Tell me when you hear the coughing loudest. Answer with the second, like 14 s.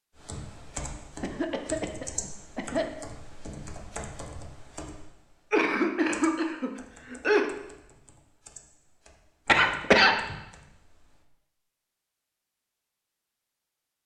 10 s.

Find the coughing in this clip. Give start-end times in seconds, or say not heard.
1.2-2.9, 5.5-7.5, 9.4-10.3.